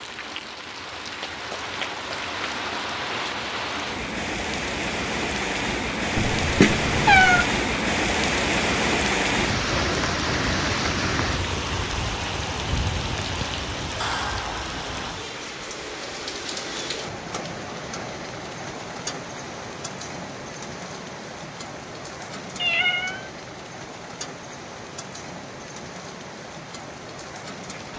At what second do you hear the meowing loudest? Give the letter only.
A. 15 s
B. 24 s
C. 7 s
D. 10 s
C.